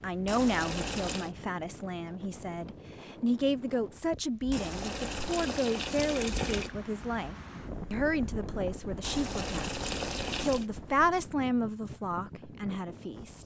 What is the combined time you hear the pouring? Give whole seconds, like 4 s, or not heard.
5 s.